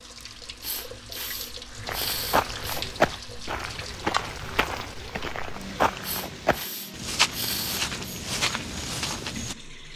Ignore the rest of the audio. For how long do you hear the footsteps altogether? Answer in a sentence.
You can hear the footsteps for 8 seconds altogether.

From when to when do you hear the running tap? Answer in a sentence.
The running tap can be heard from 0.0 to 9.9 s.